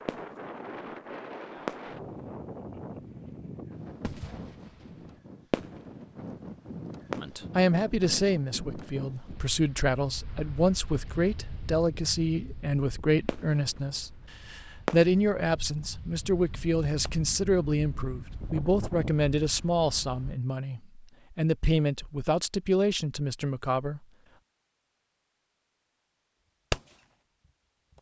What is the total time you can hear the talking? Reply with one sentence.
You can hear the talking for 17 seconds altogether.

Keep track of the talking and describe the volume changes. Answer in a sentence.
The volume of the talking stays about the same.